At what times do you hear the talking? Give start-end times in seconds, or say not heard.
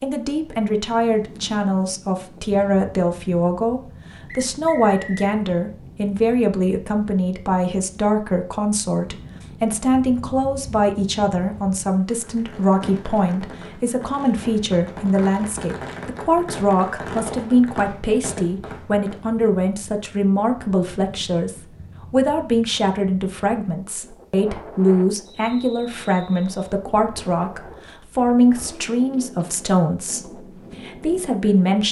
0.0-31.8.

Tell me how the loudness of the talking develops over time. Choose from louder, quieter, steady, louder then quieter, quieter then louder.
steady.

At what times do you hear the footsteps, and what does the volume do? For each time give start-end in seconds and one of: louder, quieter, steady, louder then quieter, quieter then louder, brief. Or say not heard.
not heard.